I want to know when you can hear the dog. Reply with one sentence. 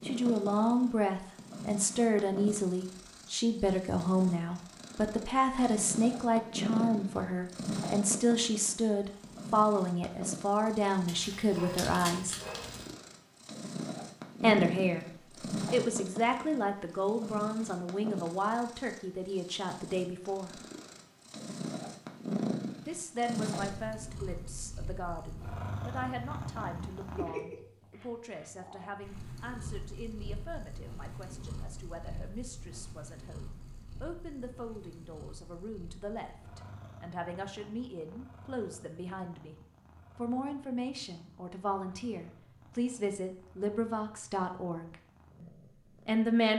You can hear the dog from 11.1 to 12.9 s.